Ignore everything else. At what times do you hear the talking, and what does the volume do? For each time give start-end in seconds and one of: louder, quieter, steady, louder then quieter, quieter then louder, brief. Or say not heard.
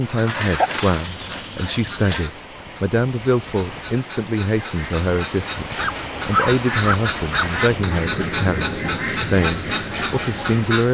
0.0-10.8 steady.